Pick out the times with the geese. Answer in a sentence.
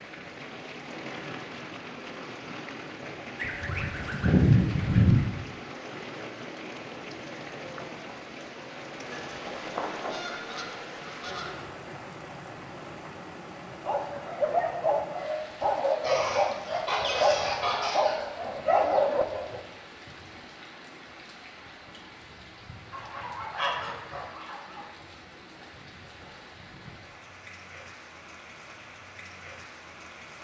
You can hear the geese from 3.4 to 5.3 s, from 9.1 to 11.6 s, from 16.0 to 18.2 s and from 22.9 to 24.9 s.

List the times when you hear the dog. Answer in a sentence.
You can hear the dog from 13.8 to 19.6 s.